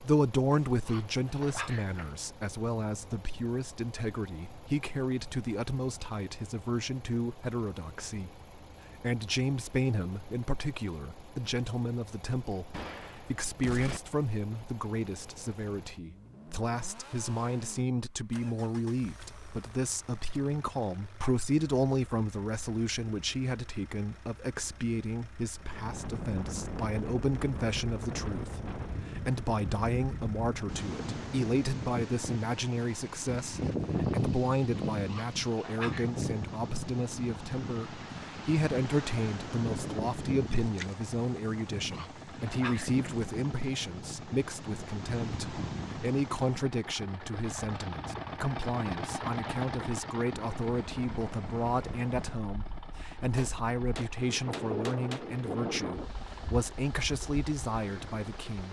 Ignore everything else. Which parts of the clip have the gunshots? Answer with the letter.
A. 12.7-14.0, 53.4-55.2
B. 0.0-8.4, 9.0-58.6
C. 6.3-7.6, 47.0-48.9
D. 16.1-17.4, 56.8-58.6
A.